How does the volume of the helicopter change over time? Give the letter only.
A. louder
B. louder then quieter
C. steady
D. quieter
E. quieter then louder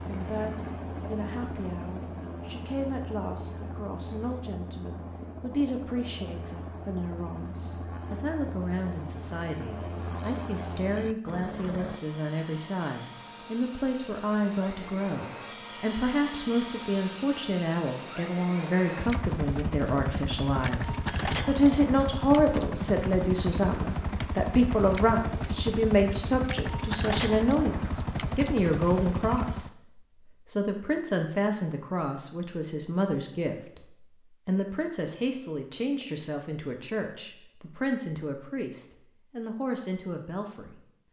A.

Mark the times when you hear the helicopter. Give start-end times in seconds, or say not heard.
0.0-29.7.